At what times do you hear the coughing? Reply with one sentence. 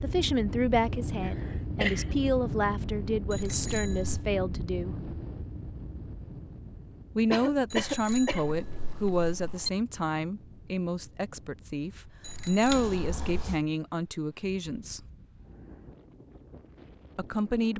The coughing can be heard from 1.2 to 2.1 s, from 7.3 to 8.6 s and from 12.7 to 13.6 s.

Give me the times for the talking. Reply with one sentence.
The talking can be heard from 0.0 to 5.0 s, from 7.2 to 15.0 s and from 17.1 to 17.7 s.